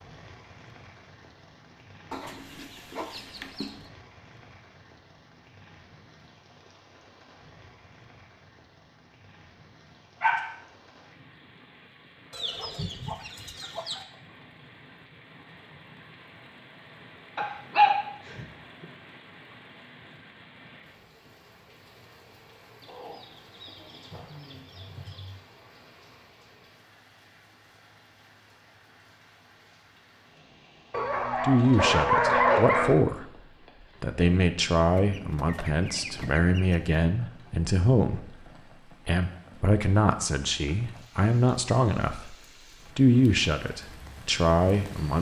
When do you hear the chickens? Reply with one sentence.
You can hear the chickens from 2.1 to 3.9 s, from 12.3 to 14.1 s, from 22.8 to 25.4 s and from 35.0 to 37.0 s.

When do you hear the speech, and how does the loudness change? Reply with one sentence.
You can hear the speech briefly from 31.4 to 33.3 s; from 34.0 to 42.4 s, at a steady volume; and briefly from 43.0 to 45.1 s.